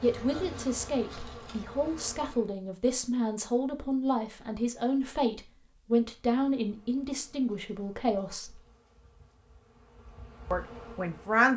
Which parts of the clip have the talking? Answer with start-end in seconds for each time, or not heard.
0.0-8.6, 10.5-11.5.